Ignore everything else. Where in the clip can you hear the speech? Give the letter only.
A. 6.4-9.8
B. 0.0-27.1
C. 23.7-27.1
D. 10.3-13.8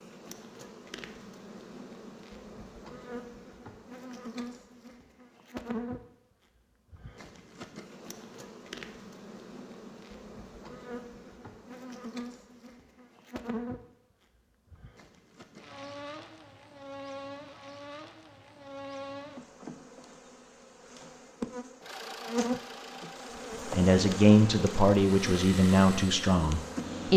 C.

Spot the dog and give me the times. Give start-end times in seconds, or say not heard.
not heard.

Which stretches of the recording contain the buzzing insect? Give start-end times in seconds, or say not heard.
0.0-27.1.